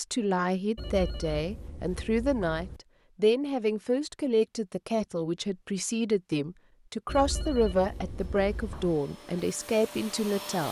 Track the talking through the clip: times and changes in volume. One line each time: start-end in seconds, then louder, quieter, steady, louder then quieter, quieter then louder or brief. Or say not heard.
0.0-10.6 steady.